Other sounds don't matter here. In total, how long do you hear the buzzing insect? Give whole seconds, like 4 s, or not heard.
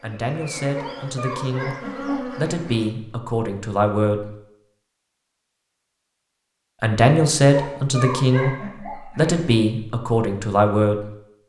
3 s.